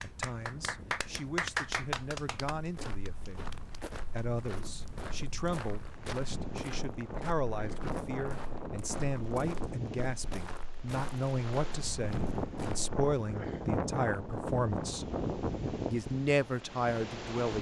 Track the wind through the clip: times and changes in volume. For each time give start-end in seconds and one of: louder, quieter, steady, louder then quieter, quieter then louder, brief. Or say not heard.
0.0-17.5 louder.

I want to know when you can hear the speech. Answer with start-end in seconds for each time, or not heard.
0.0-15.1, 15.9-17.5.